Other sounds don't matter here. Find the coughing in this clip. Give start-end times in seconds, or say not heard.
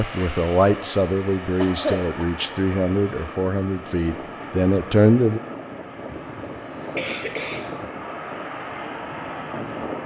1.6-2.2, 6.0-7.9.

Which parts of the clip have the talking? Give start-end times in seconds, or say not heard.
0.0-5.4.